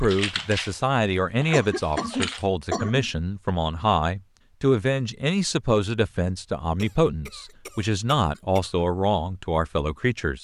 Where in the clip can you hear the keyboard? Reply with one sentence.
The keyboard can be heard from 0.0 to 2.5 s.